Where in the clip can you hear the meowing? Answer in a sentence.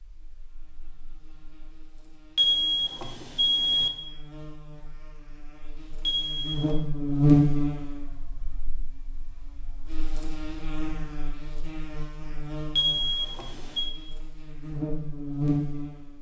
You can't hear the meowing here.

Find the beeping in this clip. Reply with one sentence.
The beeping can be heard from 2.4 to 3.9 s, from 6.0 to 6.8 s and from 12.8 to 13.9 s.